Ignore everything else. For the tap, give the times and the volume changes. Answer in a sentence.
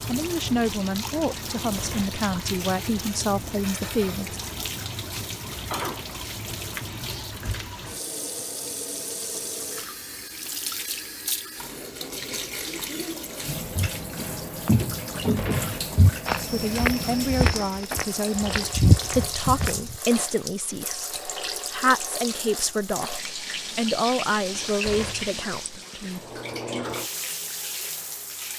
You can hear the tap from 0.0 to 28.5 s, at a steady volume.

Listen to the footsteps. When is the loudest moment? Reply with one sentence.
The loudest moment of the footsteps is at 19 seconds.